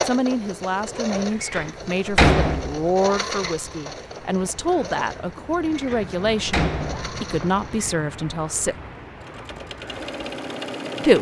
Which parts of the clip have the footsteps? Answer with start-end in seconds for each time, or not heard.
not heard.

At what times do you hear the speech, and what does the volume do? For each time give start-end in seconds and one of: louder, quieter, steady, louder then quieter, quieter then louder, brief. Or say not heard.
0.0-8.8 steady.